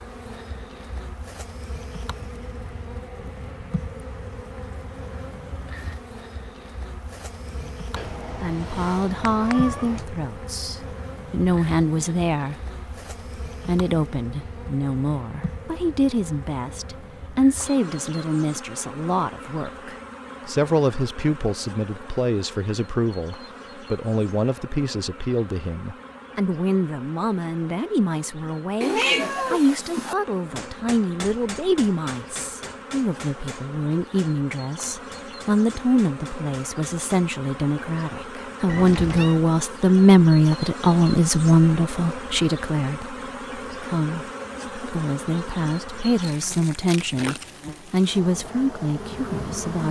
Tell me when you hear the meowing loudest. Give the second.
29 s.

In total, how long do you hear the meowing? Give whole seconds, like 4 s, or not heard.
4 s.